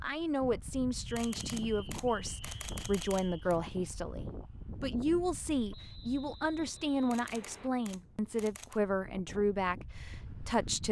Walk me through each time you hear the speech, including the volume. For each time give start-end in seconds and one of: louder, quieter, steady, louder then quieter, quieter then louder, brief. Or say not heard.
0.0-10.8 steady.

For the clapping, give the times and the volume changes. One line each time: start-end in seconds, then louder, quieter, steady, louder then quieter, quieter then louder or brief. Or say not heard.
not heard.